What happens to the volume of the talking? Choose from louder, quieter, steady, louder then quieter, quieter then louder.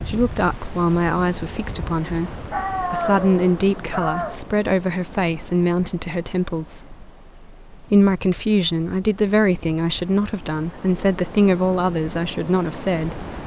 steady.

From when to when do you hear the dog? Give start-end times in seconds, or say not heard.
2.5-4.4.